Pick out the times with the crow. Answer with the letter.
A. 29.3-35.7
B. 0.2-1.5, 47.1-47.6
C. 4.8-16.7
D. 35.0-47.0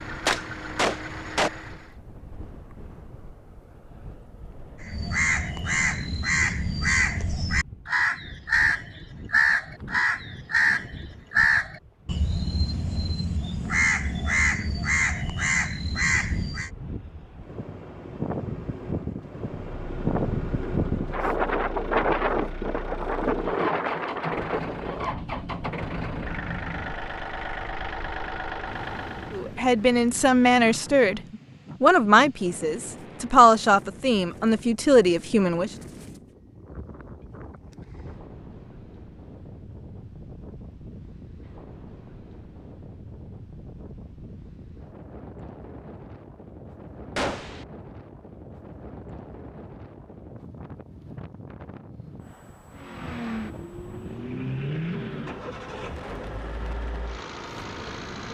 C.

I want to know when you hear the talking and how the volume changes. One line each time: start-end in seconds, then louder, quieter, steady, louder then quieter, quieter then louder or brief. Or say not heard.
29.3-35.7 steady.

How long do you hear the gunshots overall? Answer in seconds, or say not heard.
2 s.